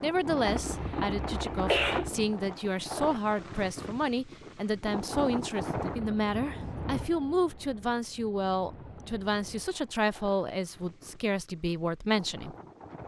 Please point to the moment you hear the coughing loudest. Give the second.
2 s.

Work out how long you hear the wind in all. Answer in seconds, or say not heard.
13 s.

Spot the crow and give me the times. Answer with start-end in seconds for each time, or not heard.
not heard.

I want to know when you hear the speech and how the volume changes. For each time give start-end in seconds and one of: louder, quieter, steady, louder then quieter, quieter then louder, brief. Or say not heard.
0.0-12.6 steady.